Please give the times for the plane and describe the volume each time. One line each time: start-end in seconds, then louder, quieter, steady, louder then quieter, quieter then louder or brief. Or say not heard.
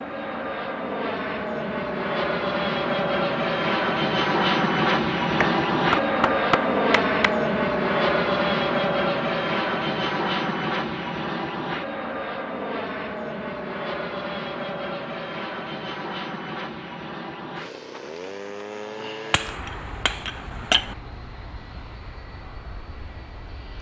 0.0-23.7 quieter.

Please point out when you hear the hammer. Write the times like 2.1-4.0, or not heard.
5.4-7.3, 19.3-20.9.